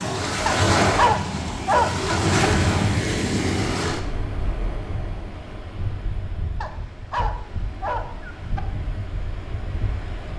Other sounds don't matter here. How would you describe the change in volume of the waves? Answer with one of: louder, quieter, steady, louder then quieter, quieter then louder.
quieter.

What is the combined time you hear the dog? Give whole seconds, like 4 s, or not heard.
4 s.